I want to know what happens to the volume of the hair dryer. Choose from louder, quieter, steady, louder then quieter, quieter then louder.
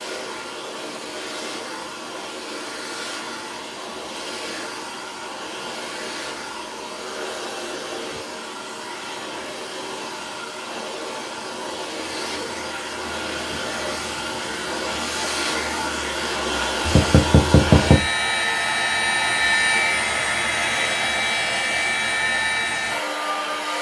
louder.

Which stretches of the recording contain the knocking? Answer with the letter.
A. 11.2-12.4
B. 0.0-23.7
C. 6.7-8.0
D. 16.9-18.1
D.